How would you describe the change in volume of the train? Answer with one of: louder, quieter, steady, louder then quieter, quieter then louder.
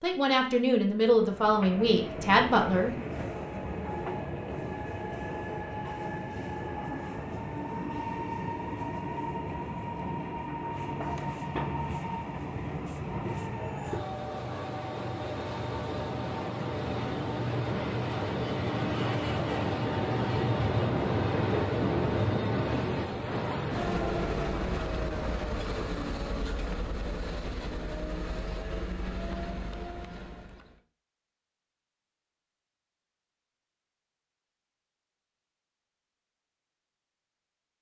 louder then quieter.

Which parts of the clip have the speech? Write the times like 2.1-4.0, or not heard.
0.0-3.0.